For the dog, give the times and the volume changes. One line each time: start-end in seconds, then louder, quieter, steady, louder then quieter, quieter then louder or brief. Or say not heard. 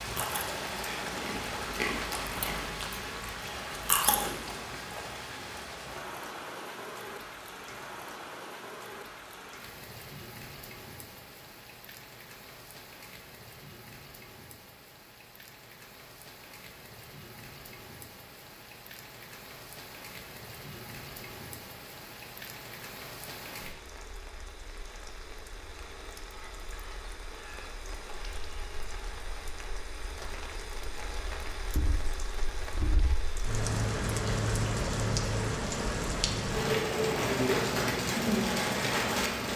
not heard.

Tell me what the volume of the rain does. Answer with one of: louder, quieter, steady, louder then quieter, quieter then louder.
quieter then louder.